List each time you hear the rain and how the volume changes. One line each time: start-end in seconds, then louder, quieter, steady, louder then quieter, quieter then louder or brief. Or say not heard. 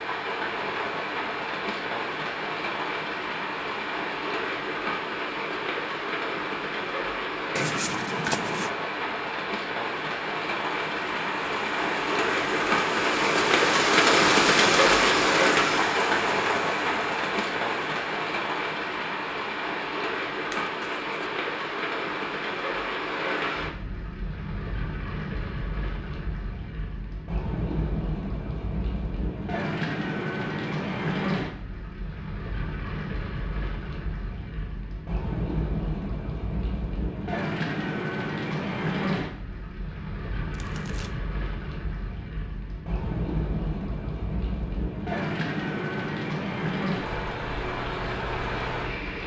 0.0-49.2 louder then quieter.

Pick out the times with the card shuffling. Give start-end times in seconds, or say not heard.
7.5-8.7, 20.5-21.1, 40.5-41.1.